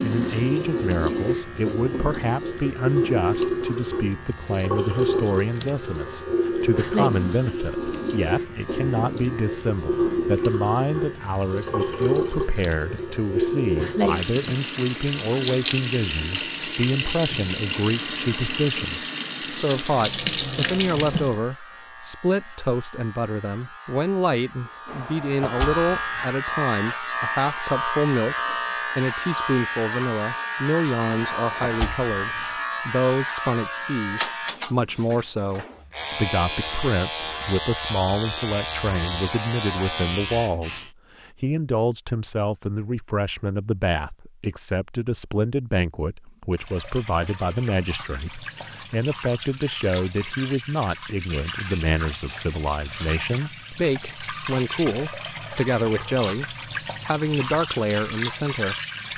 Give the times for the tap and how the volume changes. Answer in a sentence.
You can hear the tap from 0.0 to 21.4 s, at a steady volume; and from 46.5 to 59.1 s, getting louder.